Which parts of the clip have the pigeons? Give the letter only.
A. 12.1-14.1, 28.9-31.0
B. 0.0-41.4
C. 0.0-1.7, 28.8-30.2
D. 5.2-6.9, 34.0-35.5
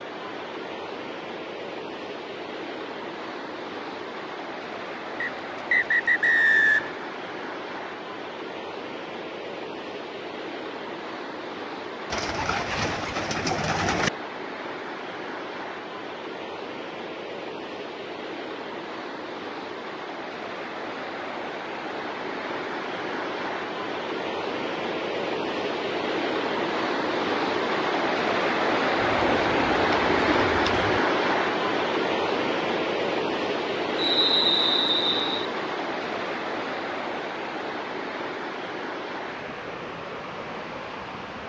A.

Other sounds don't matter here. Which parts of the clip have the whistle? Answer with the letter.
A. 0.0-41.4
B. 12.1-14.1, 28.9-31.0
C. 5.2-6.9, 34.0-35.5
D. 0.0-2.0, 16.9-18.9
C.